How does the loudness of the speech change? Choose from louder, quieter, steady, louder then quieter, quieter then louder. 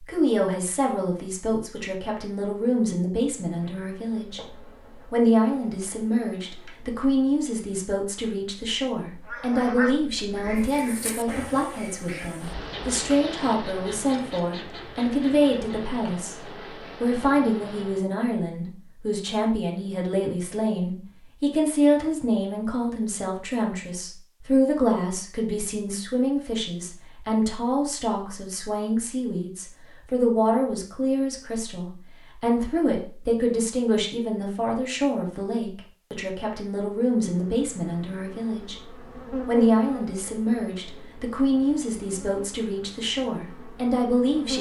steady.